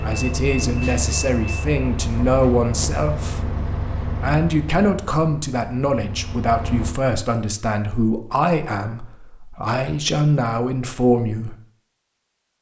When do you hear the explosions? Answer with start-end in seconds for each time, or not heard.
not heard.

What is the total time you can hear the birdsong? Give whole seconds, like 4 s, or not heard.
not heard.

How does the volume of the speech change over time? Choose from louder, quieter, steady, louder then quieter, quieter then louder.
steady.